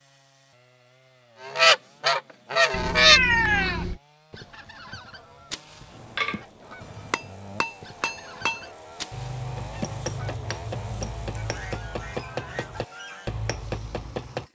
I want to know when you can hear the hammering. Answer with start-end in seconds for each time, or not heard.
5.9-14.4.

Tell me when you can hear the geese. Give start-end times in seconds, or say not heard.
1.4-13.3.